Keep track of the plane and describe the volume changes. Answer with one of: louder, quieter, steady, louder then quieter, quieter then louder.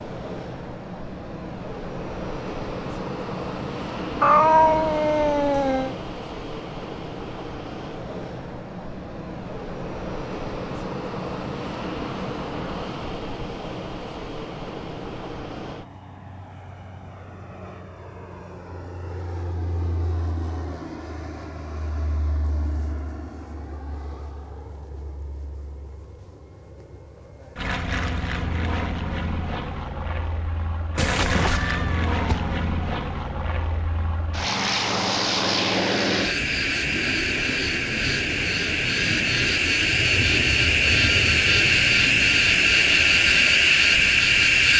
quieter then louder.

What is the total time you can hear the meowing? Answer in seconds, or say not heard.
3 s.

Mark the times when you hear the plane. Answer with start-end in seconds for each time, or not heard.
0.0-44.7.